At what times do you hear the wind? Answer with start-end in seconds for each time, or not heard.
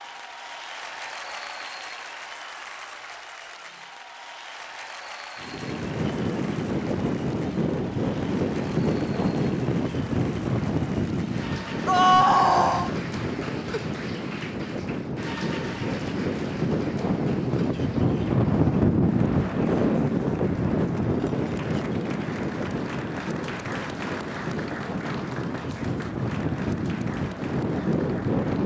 5.4-28.6.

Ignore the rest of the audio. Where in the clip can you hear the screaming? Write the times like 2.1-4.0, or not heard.
11.8-12.9.